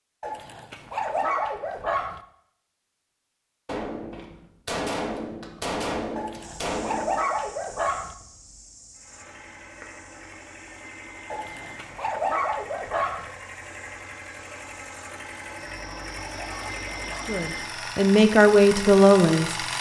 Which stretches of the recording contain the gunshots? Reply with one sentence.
You can hear the gunshots from 3.6 to 7.2 s.